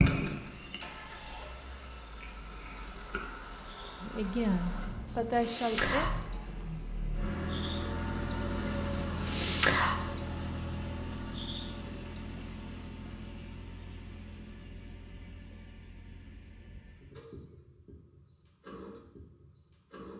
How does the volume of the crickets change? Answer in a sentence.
The volume of the crickets goes up.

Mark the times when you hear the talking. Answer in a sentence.
The talking can be heard from 4.0 to 6.0 s.